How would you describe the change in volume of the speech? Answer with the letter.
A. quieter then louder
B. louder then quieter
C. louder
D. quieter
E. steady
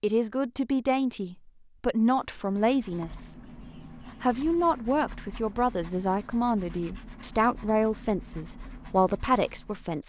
E.